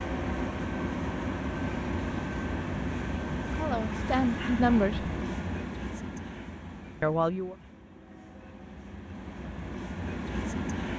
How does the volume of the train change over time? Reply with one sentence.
The volume of the train goes down, then up.